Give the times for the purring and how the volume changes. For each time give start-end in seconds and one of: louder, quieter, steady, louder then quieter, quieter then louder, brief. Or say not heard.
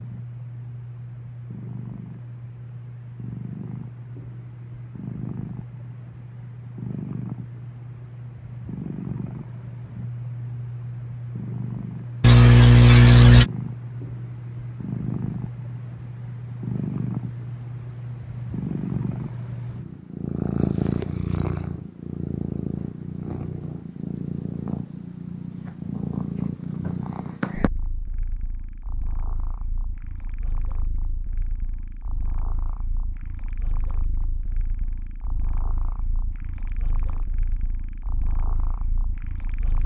0.0-39.8 louder then quieter.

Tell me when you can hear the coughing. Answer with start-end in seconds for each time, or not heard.
12.2-13.5.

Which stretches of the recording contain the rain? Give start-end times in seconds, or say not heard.
not heard.